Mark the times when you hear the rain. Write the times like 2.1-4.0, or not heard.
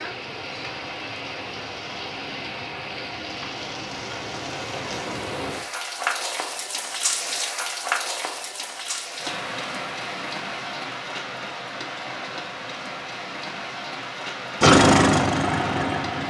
0.0-16.2.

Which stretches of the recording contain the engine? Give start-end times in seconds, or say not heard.
14.6-16.2.